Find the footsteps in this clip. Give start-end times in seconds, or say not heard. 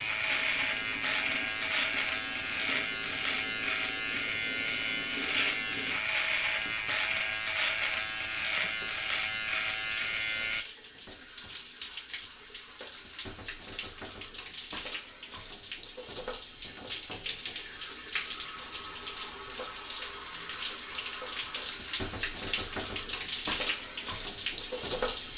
not heard.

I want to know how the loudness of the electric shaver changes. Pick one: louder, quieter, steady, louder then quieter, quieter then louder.
steady.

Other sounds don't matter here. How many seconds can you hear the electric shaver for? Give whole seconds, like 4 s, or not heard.
11 s.